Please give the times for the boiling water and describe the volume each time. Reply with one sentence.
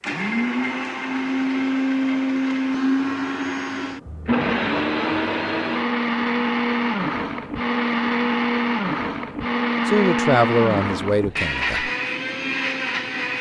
The boiling water can't be heard in this clip.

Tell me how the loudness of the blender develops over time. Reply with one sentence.
The loudness of the blender stays about the same.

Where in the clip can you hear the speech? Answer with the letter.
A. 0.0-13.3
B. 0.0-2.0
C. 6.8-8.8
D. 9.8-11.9
D.